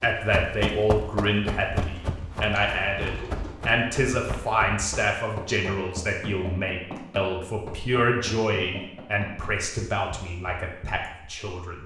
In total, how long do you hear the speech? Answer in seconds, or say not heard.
12 s.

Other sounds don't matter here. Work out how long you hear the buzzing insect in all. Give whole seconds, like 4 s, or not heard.
not heard.